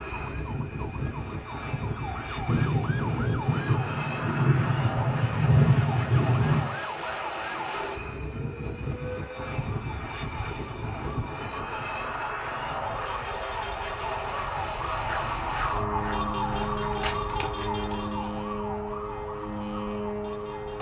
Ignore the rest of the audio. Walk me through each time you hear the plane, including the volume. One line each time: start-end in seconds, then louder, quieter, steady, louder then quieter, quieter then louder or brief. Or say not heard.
0.0-20.7 steady.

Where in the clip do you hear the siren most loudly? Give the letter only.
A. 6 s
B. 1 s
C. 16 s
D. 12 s
C.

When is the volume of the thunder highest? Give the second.
6 s.